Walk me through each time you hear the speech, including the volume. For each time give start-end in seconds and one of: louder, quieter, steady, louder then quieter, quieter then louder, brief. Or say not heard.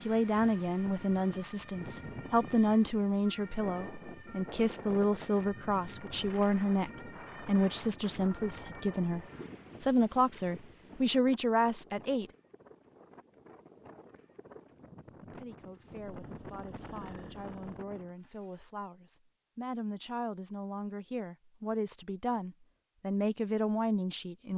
0.0-12.2 steady
15.2-24.5 louder.